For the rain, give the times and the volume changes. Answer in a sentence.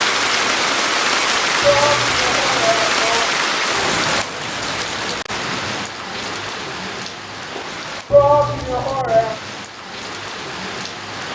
The rain can be heard from 0.0 to 11.3 s, getting quieter.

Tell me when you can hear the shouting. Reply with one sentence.
You can hear the shouting from 1.6 to 3.4 s and from 8.1 to 9.3 s.